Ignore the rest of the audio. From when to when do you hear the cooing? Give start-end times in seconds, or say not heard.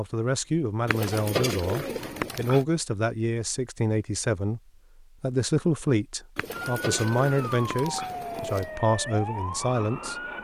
0.8-2.6, 6.3-8.8.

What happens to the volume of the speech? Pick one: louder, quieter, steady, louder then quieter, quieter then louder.
steady.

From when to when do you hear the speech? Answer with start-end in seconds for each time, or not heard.
0.0-4.6, 5.2-10.2.